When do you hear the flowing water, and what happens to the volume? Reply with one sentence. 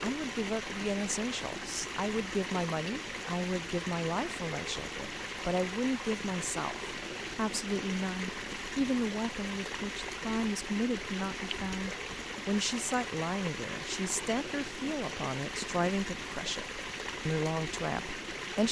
The flowing water can be heard from 0.0 to 18.6 s, at a steady volume.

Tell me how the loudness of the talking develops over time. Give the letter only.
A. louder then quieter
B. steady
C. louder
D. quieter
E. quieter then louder
B.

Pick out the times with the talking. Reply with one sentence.
You can hear the talking from 0.0 to 18.6 s.